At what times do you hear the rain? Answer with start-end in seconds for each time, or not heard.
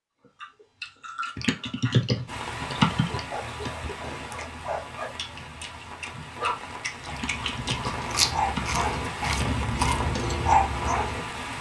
2.2-11.5.